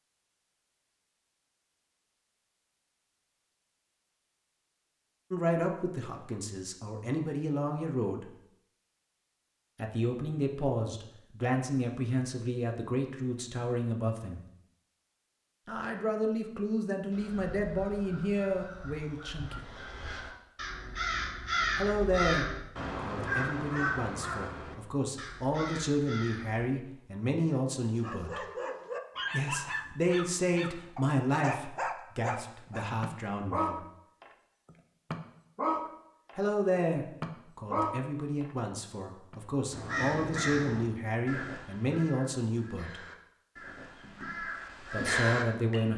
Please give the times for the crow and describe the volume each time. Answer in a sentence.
You can hear the crow from 17.1 to 26.7 s, getting louder then quieter; and from 39.7 to 45.9 s, getting quieter then louder.